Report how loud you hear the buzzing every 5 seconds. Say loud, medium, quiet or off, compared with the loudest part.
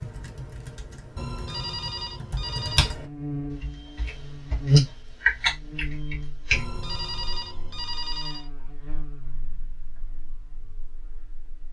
loud, quiet, quiet.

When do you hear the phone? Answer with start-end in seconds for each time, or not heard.
1.1-3.0, 6.5-8.5.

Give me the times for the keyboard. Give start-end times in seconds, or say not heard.
0.0-6.7.